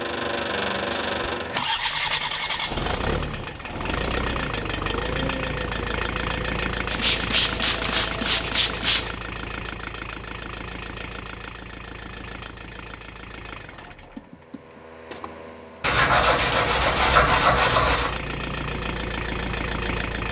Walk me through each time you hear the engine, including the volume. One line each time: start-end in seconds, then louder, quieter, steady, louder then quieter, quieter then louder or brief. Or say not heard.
0.0-20.2 quieter then louder.